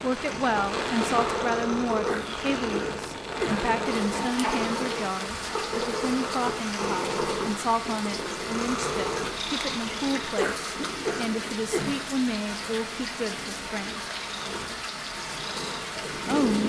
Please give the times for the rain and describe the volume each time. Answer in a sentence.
The rain can be heard from 0.0 to 16.6 s, at a steady volume.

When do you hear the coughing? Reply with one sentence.
The coughing can be heard from 2.0 to 3.7 s and from 10.3 to 12.1 s.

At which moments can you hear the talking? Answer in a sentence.
You can hear the talking from 0.0 to 14.0 s and from 15.9 to 16.6 s.